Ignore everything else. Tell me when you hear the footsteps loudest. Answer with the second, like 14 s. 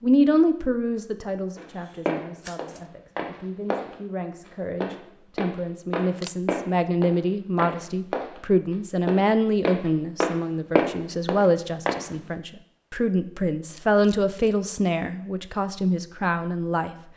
11 s.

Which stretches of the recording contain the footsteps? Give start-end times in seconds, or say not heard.
1.6-12.1.